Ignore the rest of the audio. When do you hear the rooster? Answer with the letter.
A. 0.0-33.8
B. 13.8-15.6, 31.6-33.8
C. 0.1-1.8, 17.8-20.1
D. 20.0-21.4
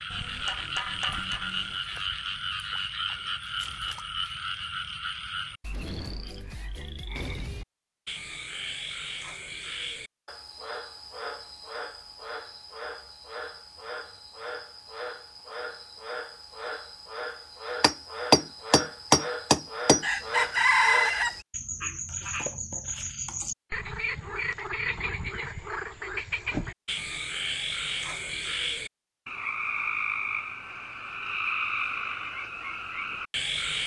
D.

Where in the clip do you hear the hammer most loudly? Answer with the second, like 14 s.
18 s.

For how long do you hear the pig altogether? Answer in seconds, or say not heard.
not heard.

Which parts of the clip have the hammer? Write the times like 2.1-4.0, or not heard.
0.1-1.8, 17.8-20.1.